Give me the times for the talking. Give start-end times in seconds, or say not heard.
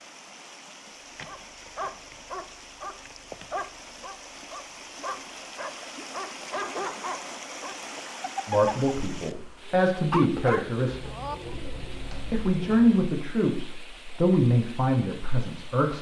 8.4-11.1, 12.3-15.9.